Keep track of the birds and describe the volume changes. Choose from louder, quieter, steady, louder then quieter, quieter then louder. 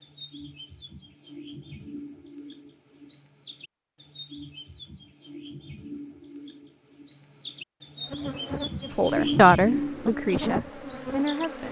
louder.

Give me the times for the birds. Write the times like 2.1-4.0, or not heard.
0.0-11.6.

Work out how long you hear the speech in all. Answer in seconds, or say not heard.
3 s.